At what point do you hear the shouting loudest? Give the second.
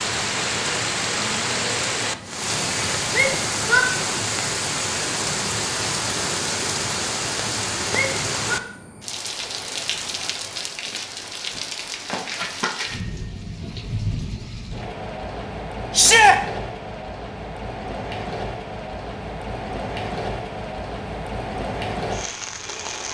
16 s.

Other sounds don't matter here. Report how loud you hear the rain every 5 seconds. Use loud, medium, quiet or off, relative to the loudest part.
loud, loud, medium, medium, medium.